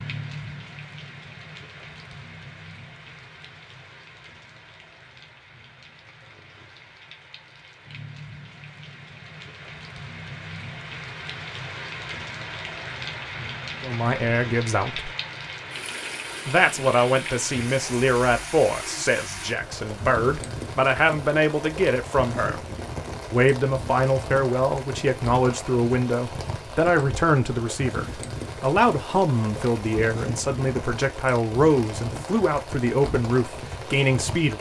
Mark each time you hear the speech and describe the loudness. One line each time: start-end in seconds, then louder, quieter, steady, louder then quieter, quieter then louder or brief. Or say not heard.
13.8-15.1 brief
16.4-22.6 quieter then louder
23.3-34.5 steady.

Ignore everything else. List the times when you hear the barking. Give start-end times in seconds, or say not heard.
not heard.